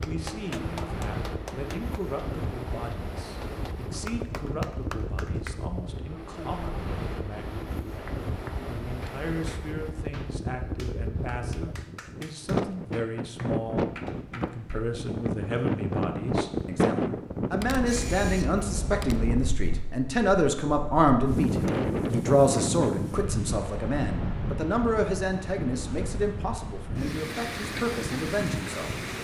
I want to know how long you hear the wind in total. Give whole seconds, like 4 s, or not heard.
29 s.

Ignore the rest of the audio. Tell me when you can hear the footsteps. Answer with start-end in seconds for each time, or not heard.
not heard.